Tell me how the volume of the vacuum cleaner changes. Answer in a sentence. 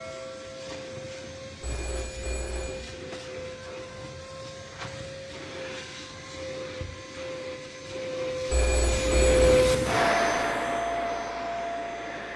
The volume of the vacuum cleaner goes up.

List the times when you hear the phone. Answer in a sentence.
The phone can be heard from 1.6 to 3.0 s and from 8.4 to 9.6 s.